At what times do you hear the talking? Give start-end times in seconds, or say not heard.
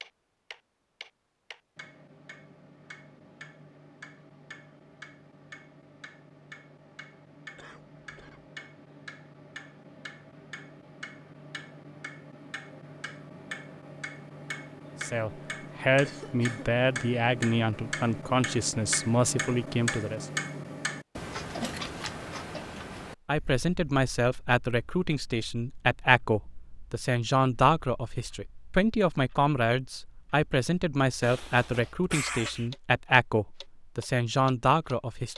15.0-20.2, 23.2-35.3.